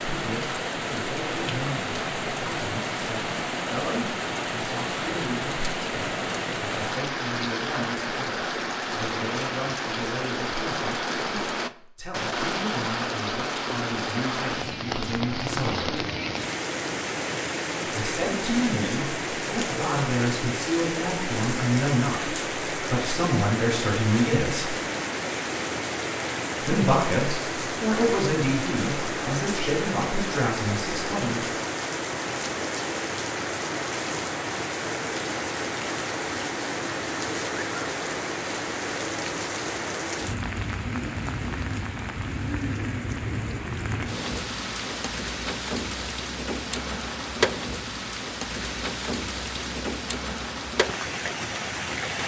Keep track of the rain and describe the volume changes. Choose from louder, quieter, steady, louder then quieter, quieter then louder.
steady.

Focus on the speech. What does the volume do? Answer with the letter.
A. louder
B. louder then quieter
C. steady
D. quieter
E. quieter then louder
A.